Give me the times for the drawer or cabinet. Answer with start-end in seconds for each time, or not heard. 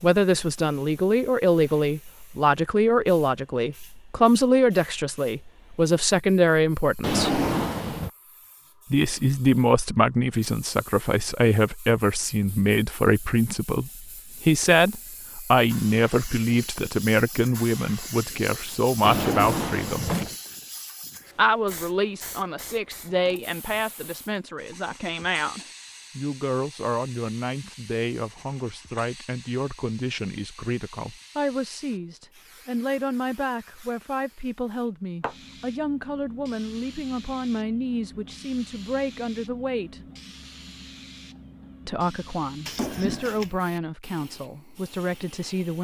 7.0-8.1, 19.0-20.4, 42.6-43.5.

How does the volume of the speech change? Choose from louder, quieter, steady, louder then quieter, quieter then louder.
quieter.